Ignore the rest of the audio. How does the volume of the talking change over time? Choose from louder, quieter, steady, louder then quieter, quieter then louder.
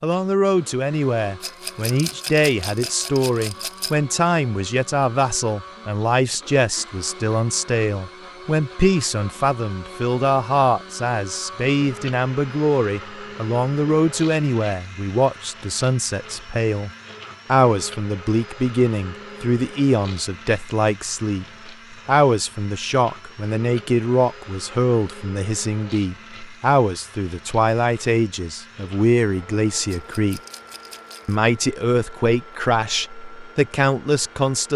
steady.